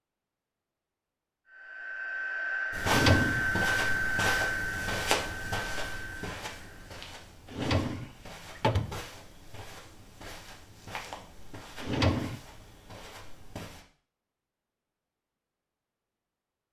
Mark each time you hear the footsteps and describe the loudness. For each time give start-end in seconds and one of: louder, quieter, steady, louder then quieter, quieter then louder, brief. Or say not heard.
2.7-13.8 quieter.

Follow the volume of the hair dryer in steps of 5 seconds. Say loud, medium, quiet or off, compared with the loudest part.
loud, medium, off, off.